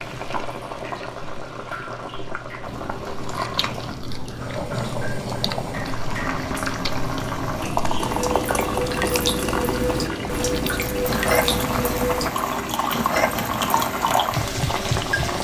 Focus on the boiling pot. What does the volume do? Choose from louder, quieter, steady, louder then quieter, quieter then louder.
louder.